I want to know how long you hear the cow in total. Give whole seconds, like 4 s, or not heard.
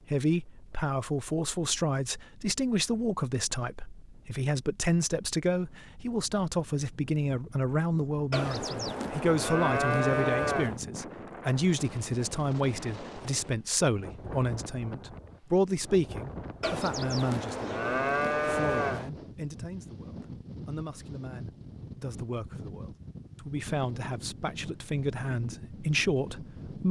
5 s.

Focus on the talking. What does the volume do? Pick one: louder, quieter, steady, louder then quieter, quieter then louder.
steady.